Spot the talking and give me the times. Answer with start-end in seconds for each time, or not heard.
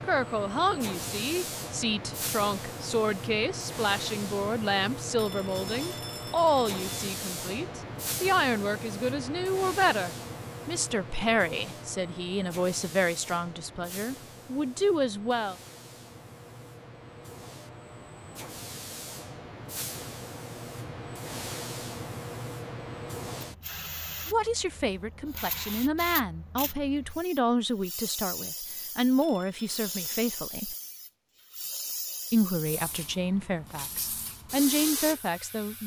0.0-15.6, 24.2-30.8, 32.3-35.8.